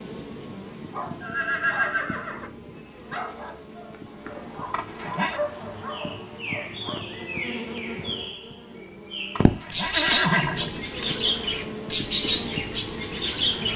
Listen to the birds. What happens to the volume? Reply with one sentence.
The loudness of the birds goes up.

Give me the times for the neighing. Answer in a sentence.
The neighing can be heard from 1.2 to 2.5 s, from 4.7 to 5.4 s and from 9.3 to 11.1 s.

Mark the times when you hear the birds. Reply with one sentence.
You can hear the birds from 5.5 to 13.7 s.